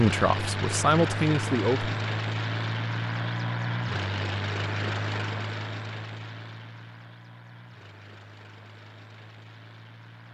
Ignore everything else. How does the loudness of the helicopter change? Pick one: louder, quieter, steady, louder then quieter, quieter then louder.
quieter.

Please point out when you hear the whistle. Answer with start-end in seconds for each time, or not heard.
not heard.